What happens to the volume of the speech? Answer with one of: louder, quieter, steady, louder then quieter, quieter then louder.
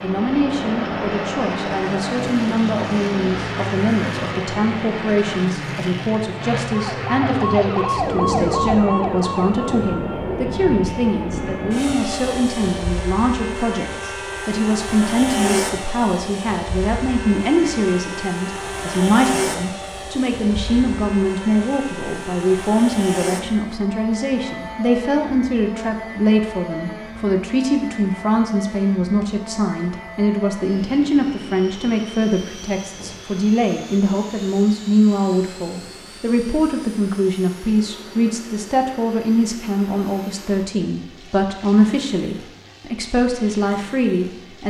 steady.